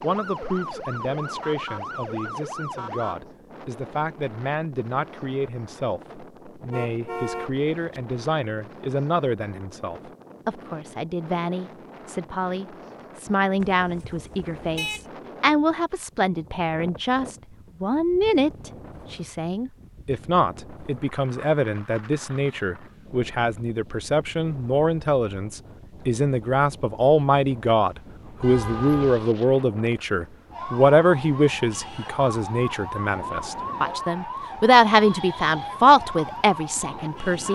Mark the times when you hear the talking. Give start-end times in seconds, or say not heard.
0.0-37.5.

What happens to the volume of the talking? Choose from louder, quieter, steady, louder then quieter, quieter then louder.
louder.